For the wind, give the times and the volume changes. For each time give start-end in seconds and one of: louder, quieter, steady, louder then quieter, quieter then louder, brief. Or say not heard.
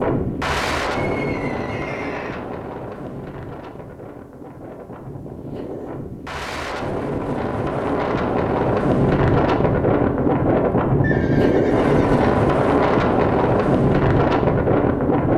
0.0-15.3 quieter then louder.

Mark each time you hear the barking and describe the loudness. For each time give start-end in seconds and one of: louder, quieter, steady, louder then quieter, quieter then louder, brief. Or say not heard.
not heard.